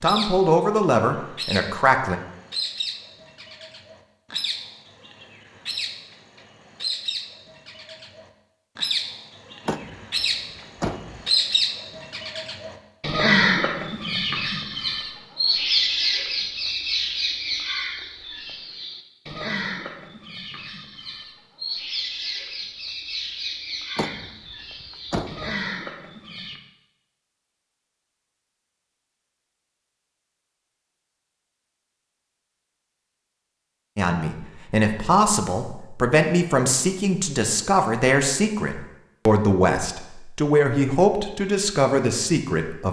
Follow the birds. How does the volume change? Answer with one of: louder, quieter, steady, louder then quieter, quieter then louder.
louder then quieter.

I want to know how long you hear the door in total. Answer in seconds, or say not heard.
3 s.